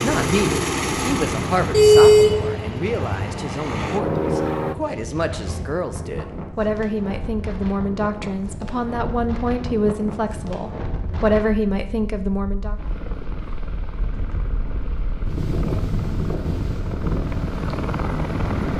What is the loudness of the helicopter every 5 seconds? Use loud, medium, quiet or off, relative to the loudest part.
loud, off, quiet, medium.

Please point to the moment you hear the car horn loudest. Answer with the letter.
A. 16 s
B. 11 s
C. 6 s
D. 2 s
D.